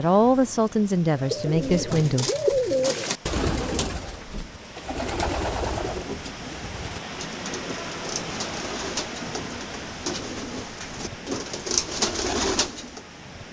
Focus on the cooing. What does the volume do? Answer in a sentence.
The loudness of the cooing goes down, then up.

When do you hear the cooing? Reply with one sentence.
You can hear the cooing from 1.1 to 13.0 s.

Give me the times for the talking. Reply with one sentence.
The talking can be heard from 0.0 to 2.3 s.